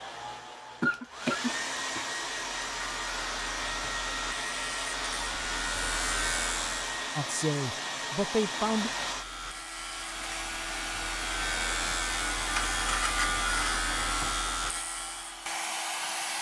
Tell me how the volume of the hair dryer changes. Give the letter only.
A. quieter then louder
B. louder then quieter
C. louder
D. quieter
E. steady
E.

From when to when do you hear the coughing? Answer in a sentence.
You can hear the coughing from 0.8 to 2.0 s.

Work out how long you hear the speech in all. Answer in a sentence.
The speech can be heard for 2 seconds in total.